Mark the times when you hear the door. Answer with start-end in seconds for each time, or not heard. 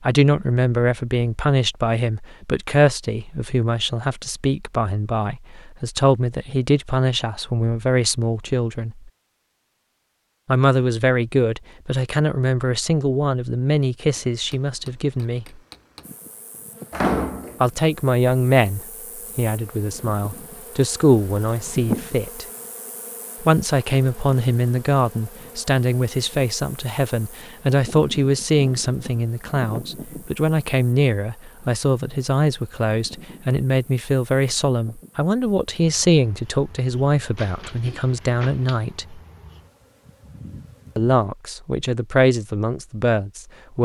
16.9-17.6, 37.4-38.8.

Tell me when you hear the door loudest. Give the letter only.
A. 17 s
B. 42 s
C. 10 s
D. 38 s
A.